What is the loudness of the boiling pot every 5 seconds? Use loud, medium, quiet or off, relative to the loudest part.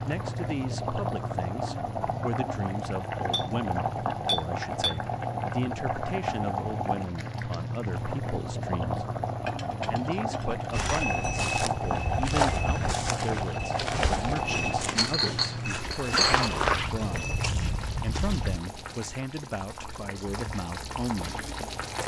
loud, loud, loud, medium, medium.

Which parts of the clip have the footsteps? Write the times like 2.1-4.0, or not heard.
10.7-18.6.